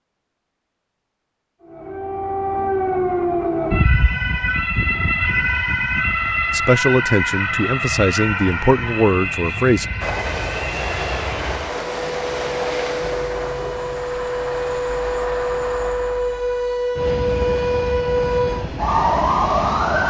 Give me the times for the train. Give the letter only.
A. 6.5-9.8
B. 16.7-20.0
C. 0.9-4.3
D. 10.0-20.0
D.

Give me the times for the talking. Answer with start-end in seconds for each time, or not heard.
6.5-9.8.